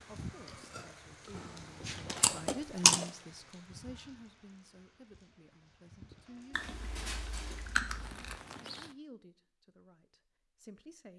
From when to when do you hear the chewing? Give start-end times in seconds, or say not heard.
0.8-3.1, 6.5-8.3.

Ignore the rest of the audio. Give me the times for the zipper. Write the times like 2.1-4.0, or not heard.
1.3-2.5, 6.5-7.8.